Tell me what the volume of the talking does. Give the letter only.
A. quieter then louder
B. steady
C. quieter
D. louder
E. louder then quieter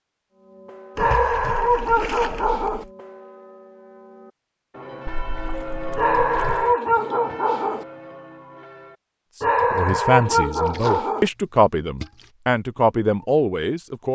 B.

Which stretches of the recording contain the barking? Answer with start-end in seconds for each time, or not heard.
0.9-2.9, 6.0-7.8, 9.4-11.3.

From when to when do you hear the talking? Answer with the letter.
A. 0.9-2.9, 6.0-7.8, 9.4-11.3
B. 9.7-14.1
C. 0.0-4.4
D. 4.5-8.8
B.